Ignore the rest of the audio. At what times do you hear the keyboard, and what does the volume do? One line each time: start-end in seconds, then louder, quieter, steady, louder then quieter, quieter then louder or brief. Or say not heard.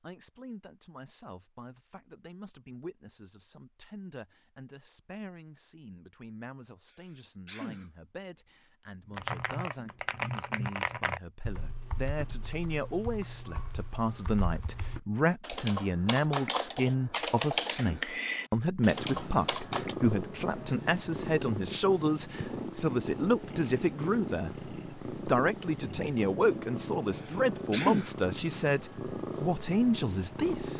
9.1-19.9 quieter then louder.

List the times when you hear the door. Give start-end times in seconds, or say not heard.
not heard.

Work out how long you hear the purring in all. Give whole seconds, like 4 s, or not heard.
12 s.